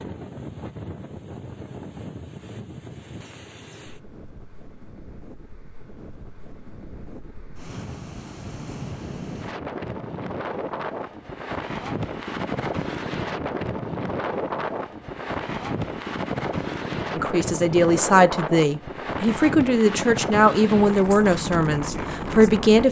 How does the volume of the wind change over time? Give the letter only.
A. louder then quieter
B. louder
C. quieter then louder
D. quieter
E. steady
B.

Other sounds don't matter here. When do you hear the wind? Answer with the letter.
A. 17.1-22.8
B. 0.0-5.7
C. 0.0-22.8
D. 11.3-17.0
C.